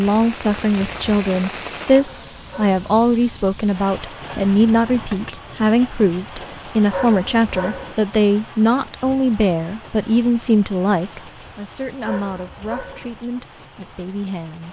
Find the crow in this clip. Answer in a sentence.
The crow can't be heard in this clip.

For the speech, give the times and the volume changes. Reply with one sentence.
The speech can be heard from 0.0 to 14.6 s, getting quieter.